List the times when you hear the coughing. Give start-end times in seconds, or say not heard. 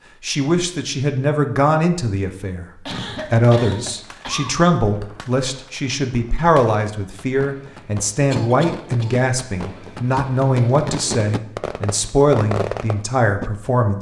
2.9-4.5, 8.3-9.2.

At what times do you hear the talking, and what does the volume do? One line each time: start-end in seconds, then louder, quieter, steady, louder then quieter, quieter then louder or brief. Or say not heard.
0.2-2.7 brief
3.3-13.9 steady.